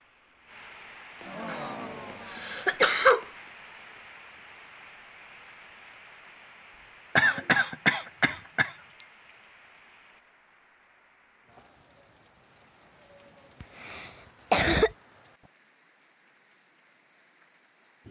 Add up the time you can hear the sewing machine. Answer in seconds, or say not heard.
not heard.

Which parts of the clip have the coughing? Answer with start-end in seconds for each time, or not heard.
1.4-3.2, 7.2-9.1, 13.6-14.9.